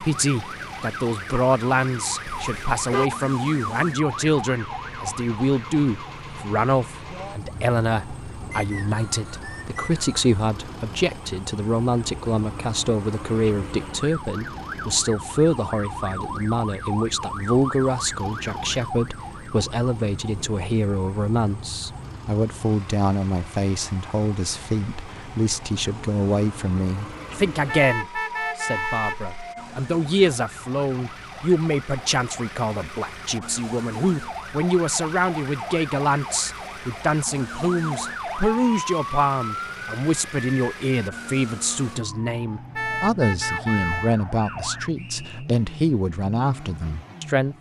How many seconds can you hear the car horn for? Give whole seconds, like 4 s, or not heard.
4 s.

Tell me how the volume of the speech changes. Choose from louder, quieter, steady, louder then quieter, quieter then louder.
steady.